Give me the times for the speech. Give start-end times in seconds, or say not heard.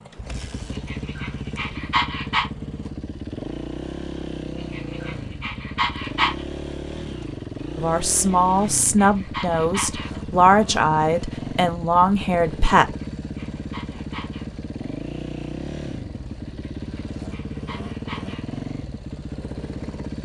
7.8-12.9.